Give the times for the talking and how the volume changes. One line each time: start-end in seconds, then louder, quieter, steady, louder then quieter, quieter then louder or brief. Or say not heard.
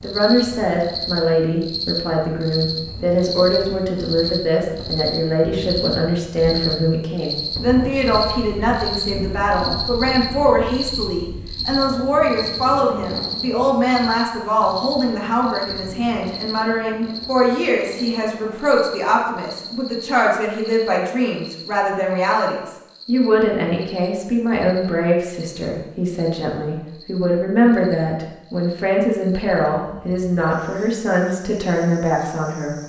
0.0-32.8 steady.